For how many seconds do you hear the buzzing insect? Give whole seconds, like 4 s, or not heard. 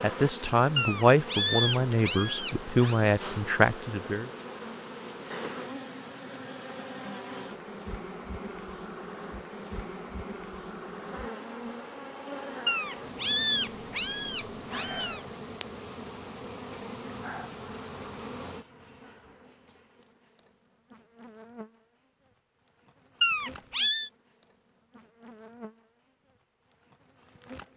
28 s.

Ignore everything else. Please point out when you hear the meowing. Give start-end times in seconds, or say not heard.
0.8-3.0, 12.7-15.2, 23.2-24.1.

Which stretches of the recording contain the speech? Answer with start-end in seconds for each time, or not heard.
0.0-4.3.